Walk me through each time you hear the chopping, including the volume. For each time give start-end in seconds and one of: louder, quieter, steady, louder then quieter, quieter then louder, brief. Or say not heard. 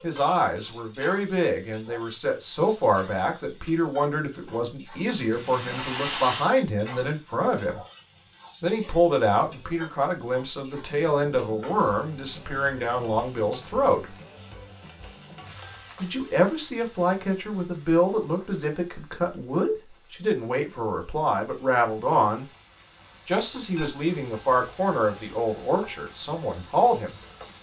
not heard.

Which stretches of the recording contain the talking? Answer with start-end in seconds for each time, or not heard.
0.0-7.8, 8.6-14.2, 16.0-22.4, 23.2-27.1.